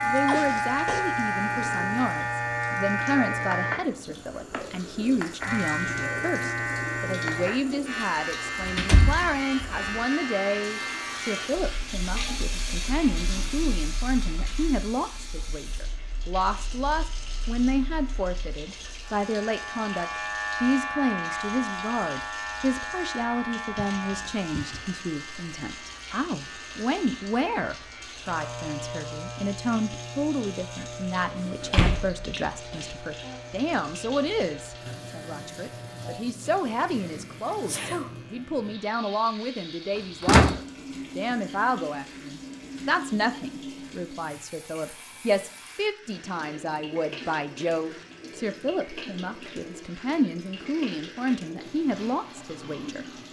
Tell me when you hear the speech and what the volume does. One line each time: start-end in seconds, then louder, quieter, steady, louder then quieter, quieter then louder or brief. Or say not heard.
0.0-53.0 steady.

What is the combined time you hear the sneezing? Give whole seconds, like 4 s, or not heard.
3 s.